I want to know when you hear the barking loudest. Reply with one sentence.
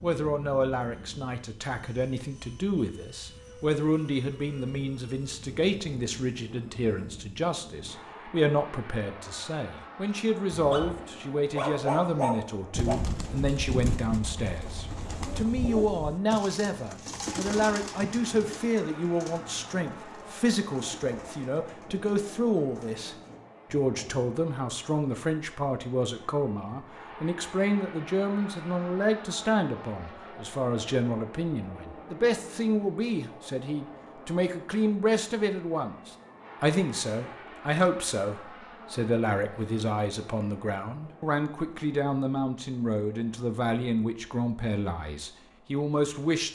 The loudest moment of the barking is at 12 seconds.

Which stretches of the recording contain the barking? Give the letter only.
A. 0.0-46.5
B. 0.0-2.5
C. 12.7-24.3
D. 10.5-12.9
D.